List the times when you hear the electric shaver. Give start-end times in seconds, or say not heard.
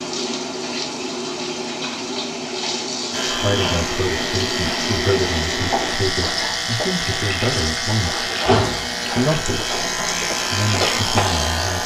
3.1-11.8.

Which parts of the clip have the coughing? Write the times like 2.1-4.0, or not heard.
not heard.